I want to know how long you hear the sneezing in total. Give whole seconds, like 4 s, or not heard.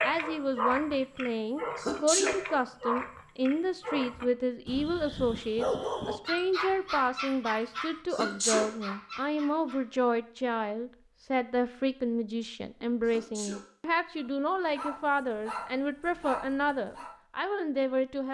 2 s.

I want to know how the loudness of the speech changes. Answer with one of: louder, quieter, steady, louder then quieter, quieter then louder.
steady.